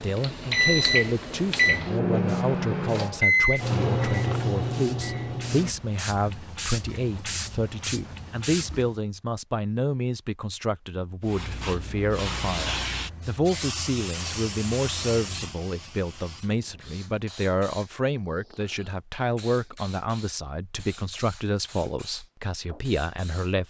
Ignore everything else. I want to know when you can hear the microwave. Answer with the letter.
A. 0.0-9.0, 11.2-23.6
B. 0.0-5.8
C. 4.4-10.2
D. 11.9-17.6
B.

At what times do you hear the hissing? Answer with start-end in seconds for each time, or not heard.
0.0-9.0, 11.2-23.6.